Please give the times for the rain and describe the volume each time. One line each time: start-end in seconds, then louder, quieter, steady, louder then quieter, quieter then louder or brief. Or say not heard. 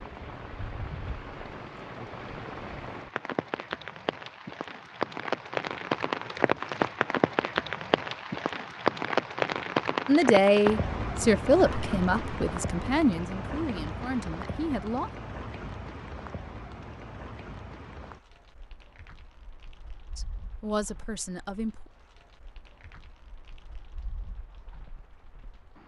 0.0-25.8 louder then quieter.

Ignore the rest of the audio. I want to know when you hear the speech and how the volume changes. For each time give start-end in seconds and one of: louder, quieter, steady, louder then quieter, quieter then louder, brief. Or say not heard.
10.1-15.1 quieter
20.1-21.9 brief.